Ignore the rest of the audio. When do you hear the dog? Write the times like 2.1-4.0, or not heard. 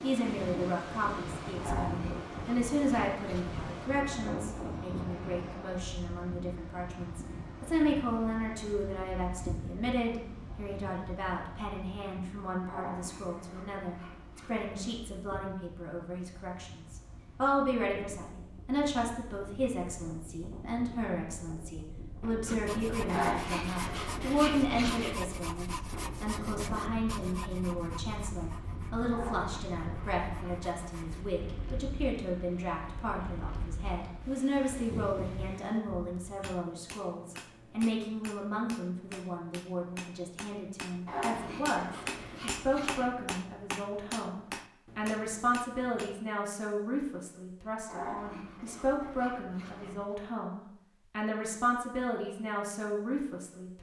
1.6-3.8, 12.7-15.0, 23.1-25.2, 29.1-30.7, 41.0-43.1, 47.9-50.1.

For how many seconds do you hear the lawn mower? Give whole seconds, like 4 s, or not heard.
not heard.